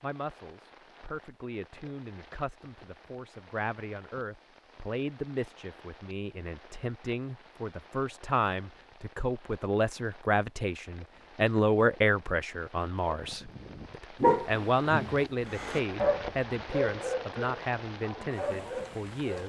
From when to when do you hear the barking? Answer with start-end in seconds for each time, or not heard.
13.1-19.4.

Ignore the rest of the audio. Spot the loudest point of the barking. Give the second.
14 s.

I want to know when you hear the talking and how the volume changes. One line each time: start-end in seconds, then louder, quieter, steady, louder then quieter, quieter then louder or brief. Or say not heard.
0.0-19.4 louder then quieter.